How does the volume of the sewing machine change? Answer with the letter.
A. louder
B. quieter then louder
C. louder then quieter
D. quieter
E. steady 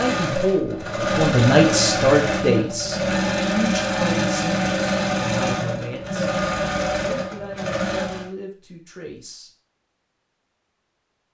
E.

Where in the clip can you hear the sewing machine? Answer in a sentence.
You can hear the sewing machine from 0.0 to 8.3 s.